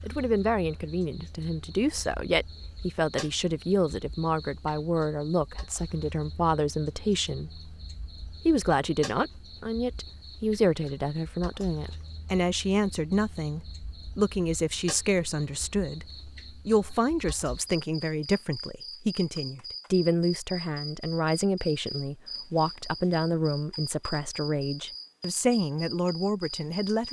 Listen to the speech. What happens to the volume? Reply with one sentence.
The volume of the speech stays about the same.